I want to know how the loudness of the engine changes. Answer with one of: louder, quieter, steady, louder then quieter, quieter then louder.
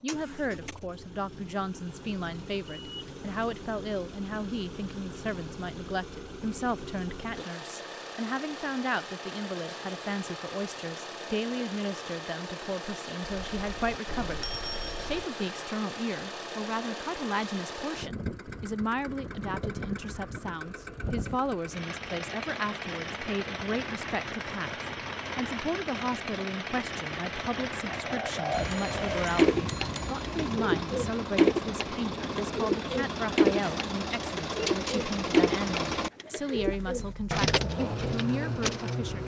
louder.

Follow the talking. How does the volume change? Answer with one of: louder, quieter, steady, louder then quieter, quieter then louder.
steady.